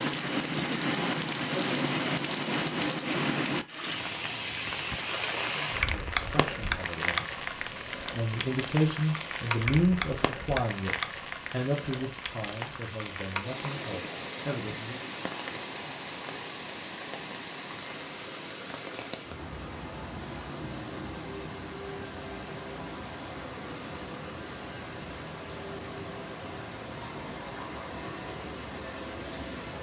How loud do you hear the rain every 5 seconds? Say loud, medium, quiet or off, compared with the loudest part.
loud, loud, medium, medium, medium, medium.